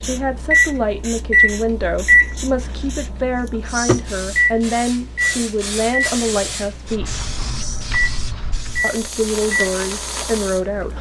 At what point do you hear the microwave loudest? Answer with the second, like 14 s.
2 s.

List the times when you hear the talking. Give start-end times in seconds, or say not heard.
0.0-7.2, 8.8-10.9.